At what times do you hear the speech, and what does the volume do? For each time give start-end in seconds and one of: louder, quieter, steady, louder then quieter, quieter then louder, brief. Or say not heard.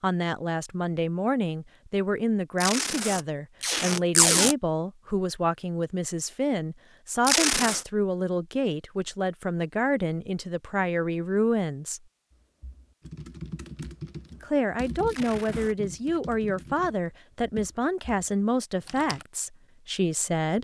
0.0-12.0 steady
14.4-20.5 steady.